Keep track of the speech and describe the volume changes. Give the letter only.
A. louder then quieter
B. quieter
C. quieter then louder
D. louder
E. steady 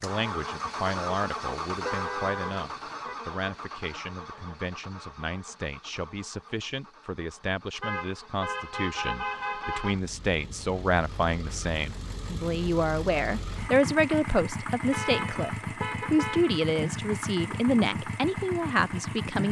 D.